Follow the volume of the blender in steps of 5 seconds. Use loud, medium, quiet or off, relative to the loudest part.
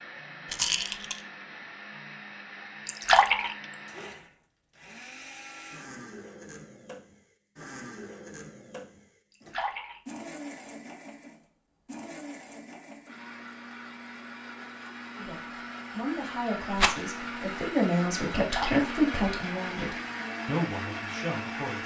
medium, medium, medium, loud, loud.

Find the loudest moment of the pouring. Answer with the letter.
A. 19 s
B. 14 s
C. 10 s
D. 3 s
D.